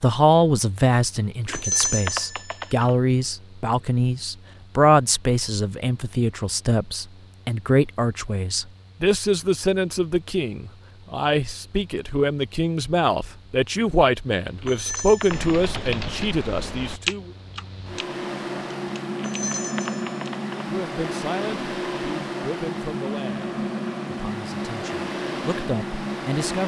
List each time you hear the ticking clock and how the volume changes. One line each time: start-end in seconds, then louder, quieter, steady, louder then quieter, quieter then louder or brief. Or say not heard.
not heard.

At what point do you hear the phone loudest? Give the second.
2 s.